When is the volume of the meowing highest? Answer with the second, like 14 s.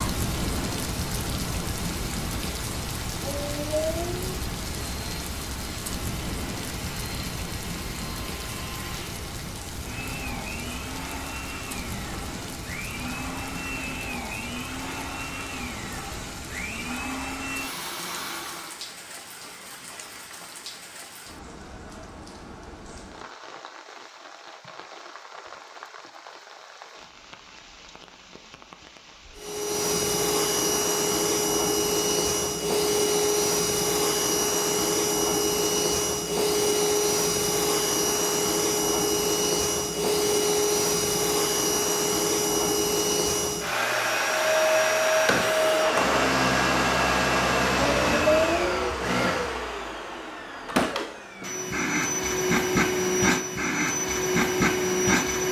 48 s.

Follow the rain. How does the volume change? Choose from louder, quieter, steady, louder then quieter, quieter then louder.
quieter.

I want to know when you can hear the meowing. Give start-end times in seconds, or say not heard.
3.2-4.3, 47.8-49.0.